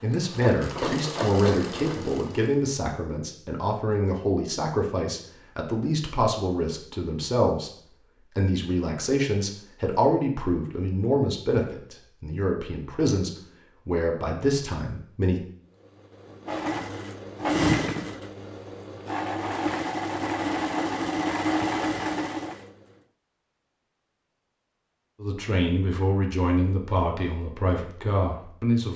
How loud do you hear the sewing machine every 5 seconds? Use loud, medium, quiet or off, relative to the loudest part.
medium, off, off, loud, loud, off.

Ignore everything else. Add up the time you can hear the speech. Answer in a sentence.
The speech can be heard for 19 seconds in total.